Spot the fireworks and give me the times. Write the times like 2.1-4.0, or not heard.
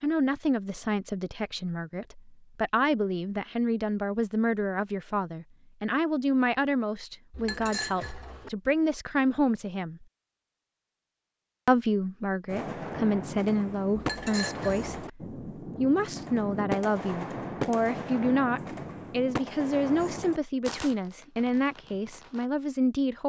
12.4-22.5.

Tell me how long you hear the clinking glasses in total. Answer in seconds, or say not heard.
2 s.